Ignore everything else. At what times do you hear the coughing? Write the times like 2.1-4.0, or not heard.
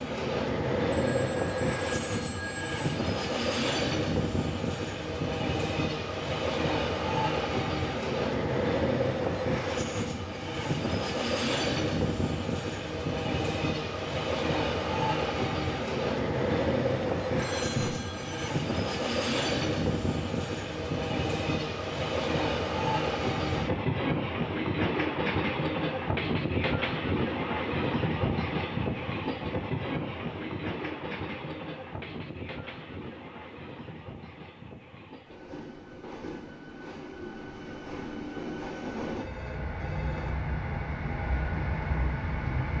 not heard.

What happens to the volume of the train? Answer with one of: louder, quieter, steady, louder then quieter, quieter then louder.
quieter.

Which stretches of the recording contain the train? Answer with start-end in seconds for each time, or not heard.
0.0-42.7.